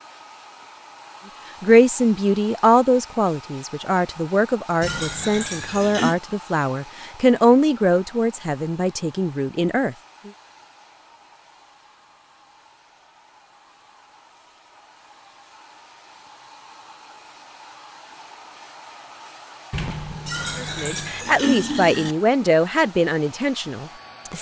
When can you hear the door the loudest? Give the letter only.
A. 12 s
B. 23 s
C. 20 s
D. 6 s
C.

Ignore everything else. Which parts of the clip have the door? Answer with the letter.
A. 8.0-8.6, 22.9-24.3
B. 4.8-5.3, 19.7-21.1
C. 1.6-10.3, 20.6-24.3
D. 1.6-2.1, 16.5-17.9
B.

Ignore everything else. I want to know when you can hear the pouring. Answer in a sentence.
The pouring can be heard from 4.8 to 6.2 s and from 20.2 to 22.1 s.